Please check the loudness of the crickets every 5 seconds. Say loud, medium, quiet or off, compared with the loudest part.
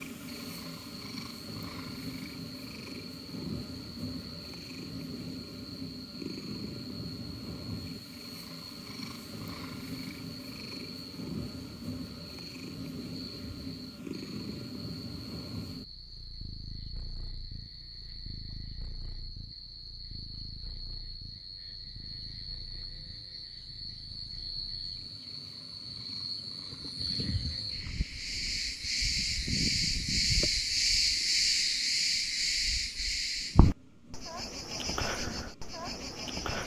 quiet, quiet, quiet, quiet, quiet, medium, loud, medium.